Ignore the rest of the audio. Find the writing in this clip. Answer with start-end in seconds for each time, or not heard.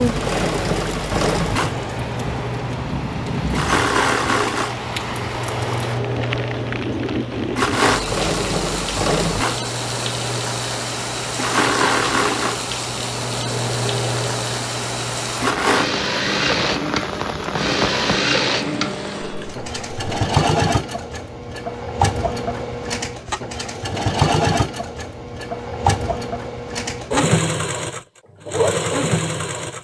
not heard.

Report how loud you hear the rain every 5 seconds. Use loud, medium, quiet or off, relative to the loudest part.
loud, loud, loud, loud, off, off.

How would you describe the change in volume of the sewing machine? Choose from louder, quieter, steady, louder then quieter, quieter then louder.
steady.